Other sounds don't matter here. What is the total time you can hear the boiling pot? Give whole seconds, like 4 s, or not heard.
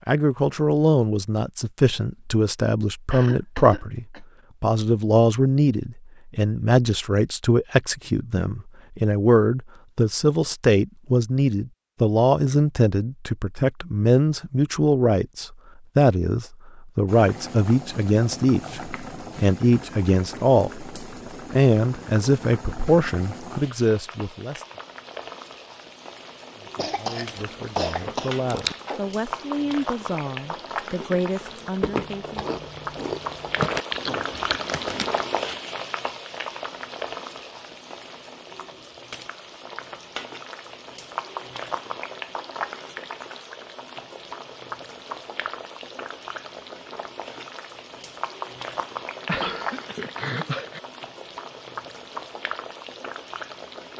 37 s.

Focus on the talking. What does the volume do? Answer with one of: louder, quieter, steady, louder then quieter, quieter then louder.
quieter.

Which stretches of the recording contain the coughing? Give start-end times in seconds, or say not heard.
3.1-4.2, 26.8-28.8, 49.2-50.8.